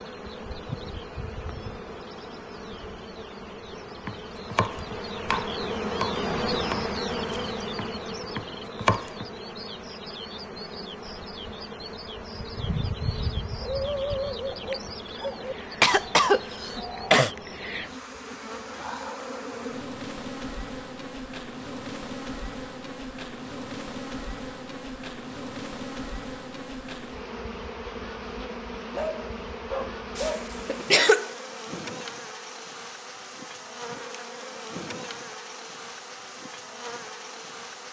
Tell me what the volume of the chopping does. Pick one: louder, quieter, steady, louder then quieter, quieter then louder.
quieter then louder.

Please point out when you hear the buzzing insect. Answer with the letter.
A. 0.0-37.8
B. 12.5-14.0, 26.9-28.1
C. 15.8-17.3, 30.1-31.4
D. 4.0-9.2
A.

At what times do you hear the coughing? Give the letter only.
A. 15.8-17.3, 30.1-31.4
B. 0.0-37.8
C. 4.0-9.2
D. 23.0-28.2
A.